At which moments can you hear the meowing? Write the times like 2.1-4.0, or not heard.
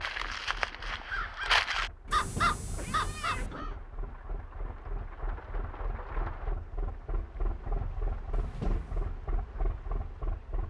2.0-3.6, 8.3-9.1.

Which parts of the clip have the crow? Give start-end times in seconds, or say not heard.
0.0-3.8.